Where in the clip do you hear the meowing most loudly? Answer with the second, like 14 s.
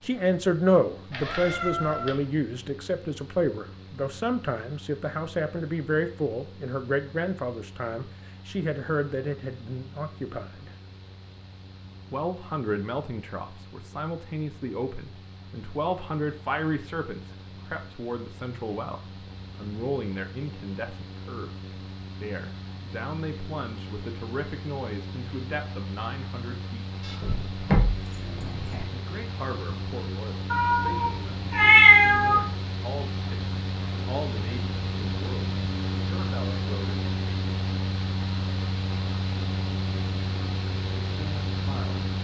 32 s.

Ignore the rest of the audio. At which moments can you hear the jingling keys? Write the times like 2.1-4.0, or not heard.
27.0-28.9.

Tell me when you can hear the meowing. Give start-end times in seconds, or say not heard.
1.1-2.2, 30.5-32.4.